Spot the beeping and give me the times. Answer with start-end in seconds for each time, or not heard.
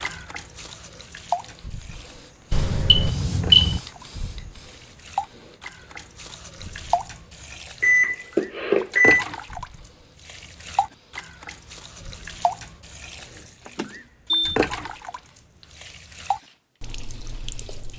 2.5-3.8, 7.8-9.2, 13.7-14.6.